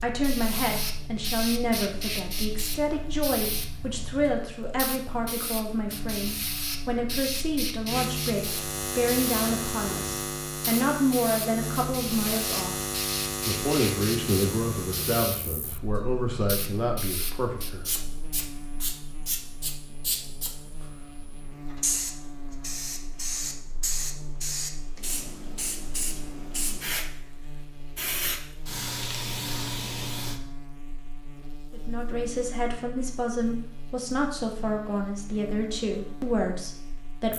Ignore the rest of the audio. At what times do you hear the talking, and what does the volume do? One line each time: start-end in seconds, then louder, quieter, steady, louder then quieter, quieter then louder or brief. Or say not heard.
0.0-17.8 steady
31.7-37.3 steady.